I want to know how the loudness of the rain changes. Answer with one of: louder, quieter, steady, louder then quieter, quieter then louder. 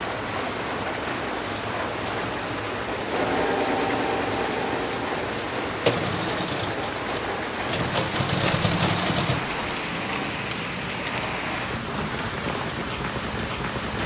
steady.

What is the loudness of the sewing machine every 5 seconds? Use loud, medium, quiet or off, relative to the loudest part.
loud, loud, off.